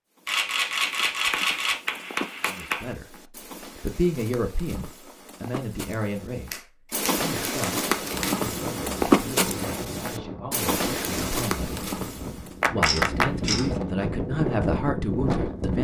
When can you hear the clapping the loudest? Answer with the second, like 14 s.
13 s.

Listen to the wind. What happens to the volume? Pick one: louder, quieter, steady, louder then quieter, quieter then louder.
louder.